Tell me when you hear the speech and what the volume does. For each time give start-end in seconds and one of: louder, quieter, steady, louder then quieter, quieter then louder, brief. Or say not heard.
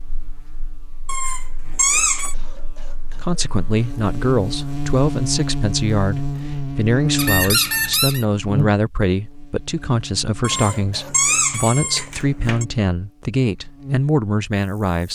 3.1-15.0 steady.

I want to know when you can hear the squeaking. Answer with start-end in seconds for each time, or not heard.
1.1-2.4, 7.2-8.2, 10.4-12.7.